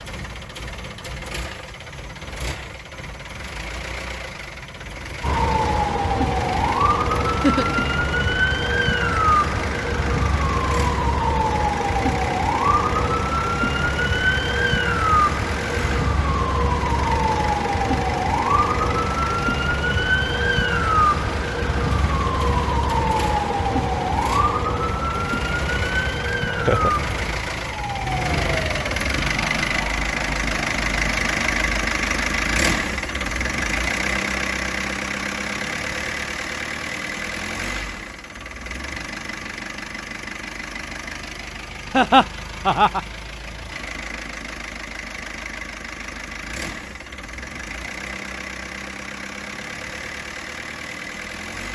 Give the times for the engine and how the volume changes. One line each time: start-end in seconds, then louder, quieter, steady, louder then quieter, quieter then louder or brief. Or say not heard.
0.0-51.7 louder then quieter.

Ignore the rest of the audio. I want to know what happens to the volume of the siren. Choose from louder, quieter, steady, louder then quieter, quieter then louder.
quieter.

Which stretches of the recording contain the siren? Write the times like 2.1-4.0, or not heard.
5.2-31.9.